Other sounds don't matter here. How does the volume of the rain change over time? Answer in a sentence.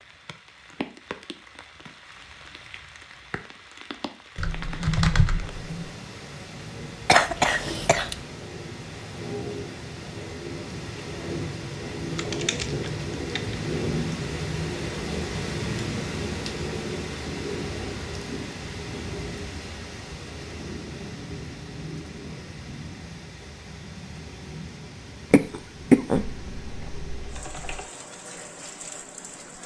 The volume of the rain goes up, then down.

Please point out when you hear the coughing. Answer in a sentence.
The coughing can be heard from 7.0 to 8.2 s and from 25.3 to 26.2 s.